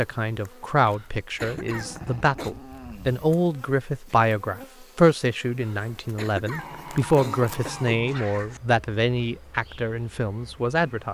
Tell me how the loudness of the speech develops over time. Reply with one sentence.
The volume of the speech stays about the same.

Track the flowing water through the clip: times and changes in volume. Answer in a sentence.
The flowing water can't be heard in this clip.